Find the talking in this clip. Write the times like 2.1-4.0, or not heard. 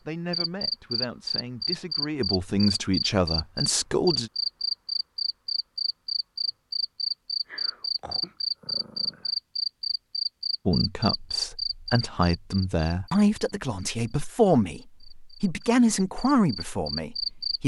0.1-4.3, 10.7-17.6.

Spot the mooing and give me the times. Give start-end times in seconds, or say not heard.
not heard.